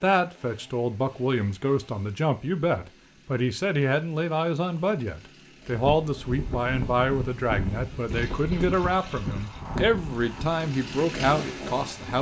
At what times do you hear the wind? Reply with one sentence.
The wind can be heard from 5.7 to 12.1 s.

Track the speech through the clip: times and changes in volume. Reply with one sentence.
The speech can be heard from 0.0 to 12.1 s, at a steady volume.